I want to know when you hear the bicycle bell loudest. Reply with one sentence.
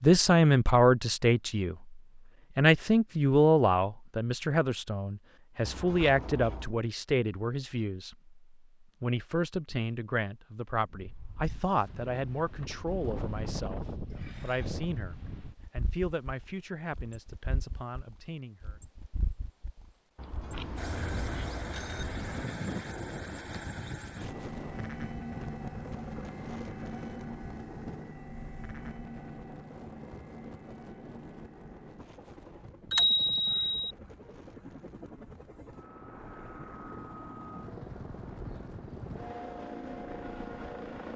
The loudest moment of the bicycle bell is at 33 seconds.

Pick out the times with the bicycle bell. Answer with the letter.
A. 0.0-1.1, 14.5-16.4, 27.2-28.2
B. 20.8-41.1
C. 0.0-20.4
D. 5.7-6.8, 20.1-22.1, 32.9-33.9
D.